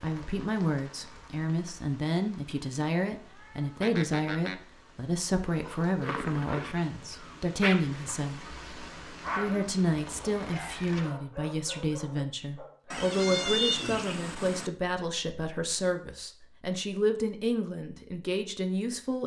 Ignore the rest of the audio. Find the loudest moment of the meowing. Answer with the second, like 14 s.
14 s.